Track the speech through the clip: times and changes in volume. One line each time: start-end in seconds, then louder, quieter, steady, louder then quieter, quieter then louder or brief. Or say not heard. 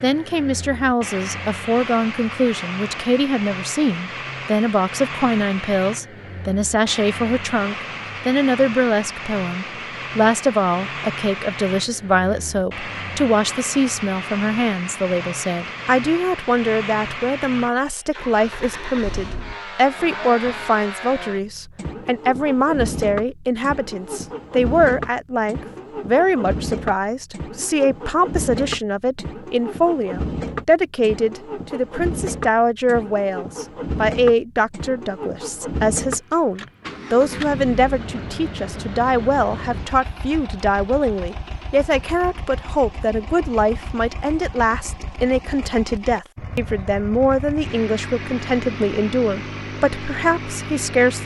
0.0-51.2 steady.